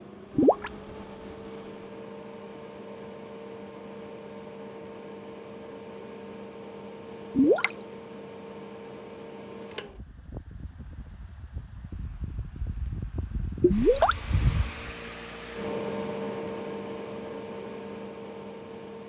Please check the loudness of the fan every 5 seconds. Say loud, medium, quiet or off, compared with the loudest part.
medium, medium, loud, loud.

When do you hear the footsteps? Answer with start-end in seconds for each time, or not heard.
not heard.